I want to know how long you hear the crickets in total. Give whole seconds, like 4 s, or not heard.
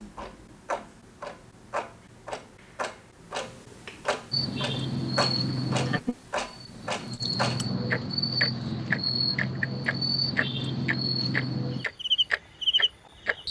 9 s.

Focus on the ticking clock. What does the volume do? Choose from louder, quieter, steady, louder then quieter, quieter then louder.
louder.